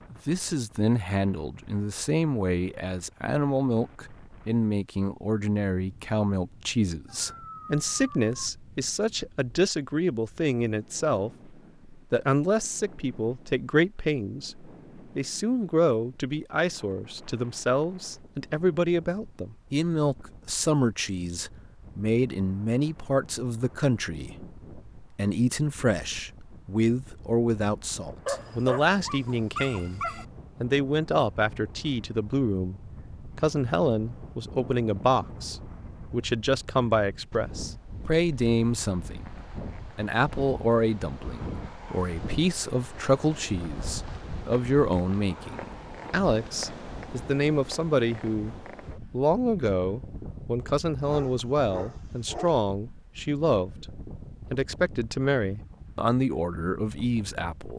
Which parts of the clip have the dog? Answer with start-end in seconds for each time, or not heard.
7.0-8.5, 28.2-30.2, 51.0-52.5.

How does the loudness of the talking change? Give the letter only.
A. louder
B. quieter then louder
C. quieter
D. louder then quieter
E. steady
E.